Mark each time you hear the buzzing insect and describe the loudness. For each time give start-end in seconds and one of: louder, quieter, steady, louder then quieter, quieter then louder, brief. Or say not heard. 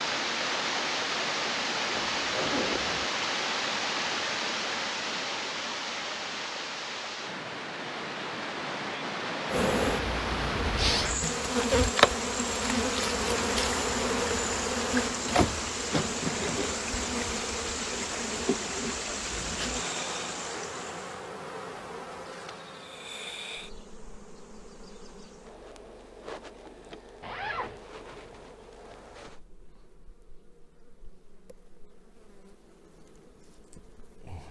9.4-34.4 quieter.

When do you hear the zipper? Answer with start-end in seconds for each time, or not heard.
1.9-3.1, 27.2-27.8.